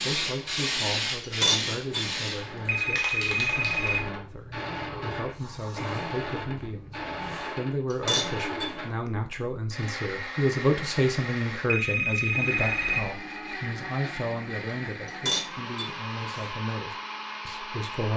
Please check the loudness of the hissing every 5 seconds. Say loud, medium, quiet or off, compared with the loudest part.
loud, quiet, off, off.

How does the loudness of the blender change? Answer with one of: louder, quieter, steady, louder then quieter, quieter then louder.
steady.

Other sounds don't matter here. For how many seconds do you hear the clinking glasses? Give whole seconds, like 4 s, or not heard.
3 s.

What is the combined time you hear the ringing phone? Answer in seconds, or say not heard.
3 s.